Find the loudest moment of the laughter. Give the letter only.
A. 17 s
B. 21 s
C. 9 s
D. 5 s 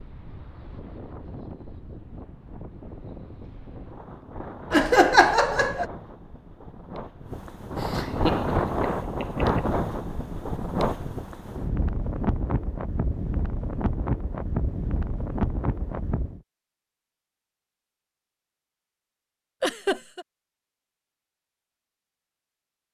D.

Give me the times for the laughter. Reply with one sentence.
The laughter can be heard from 4.7 to 5.8 s, from 7.8 to 9.7 s and from 19.6 to 20.2 s.